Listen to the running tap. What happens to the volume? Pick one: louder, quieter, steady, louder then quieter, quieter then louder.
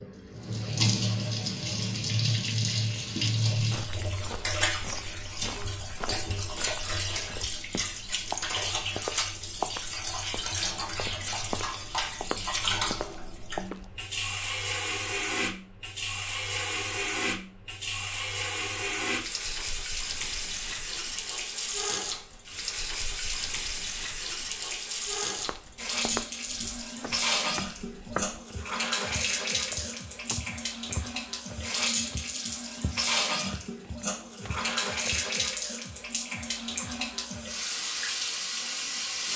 steady.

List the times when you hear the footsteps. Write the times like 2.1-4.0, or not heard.
3.5-14.1, 25.4-35.4.